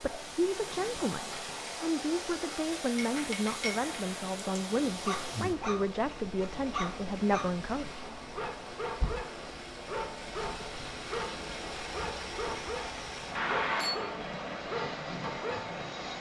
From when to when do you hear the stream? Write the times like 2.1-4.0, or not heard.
0.0-16.1.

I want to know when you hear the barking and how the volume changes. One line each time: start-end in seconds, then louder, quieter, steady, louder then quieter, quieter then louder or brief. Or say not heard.
4.8-15.8 steady.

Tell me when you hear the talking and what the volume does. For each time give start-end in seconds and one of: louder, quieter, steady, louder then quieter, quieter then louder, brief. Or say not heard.
0.0-8.0 steady.